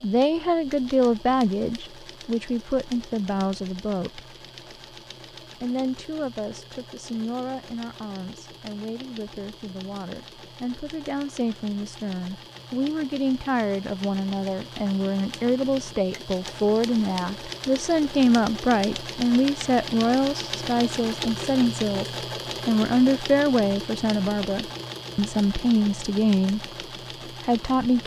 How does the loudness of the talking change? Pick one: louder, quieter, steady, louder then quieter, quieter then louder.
quieter then louder.